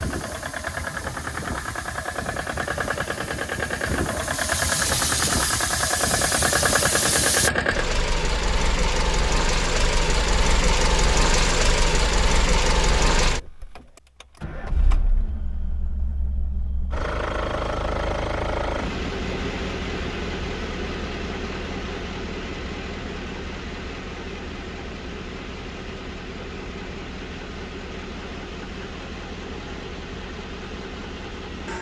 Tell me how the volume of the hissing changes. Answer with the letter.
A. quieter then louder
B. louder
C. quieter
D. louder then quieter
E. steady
B.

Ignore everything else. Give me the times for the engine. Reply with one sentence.
The engine can be heard from 0.0 to 31.7 s.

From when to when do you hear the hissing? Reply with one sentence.
The hissing can be heard from 0.0 to 7.5 s.